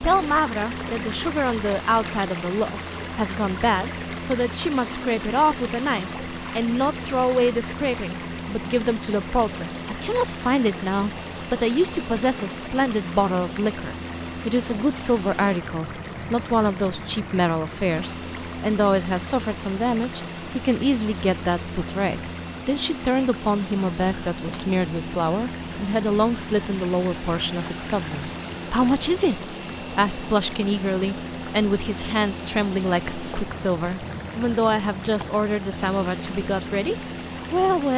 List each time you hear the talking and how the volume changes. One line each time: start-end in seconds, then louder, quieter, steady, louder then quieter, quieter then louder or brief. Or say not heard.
0.0-37.9 steady.